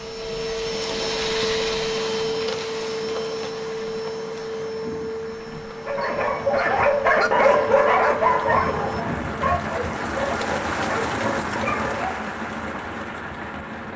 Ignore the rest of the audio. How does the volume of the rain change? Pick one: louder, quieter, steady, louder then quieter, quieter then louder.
louder.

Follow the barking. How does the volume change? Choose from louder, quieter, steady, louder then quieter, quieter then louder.
quieter.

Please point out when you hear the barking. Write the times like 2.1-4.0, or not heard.
5.8-12.2.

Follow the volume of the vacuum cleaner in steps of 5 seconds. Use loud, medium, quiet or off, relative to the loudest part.
loud, medium, off.